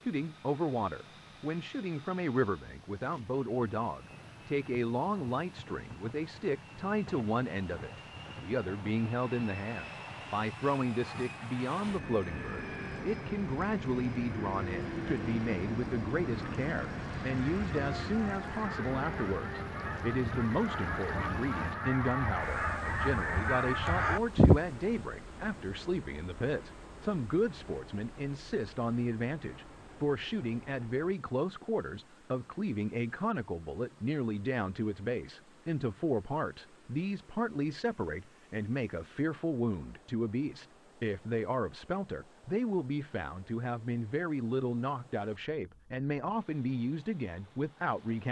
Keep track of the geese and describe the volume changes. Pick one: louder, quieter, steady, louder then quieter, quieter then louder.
louder.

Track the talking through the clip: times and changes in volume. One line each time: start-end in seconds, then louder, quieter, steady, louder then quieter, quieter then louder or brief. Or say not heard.
0.0-48.2 steady.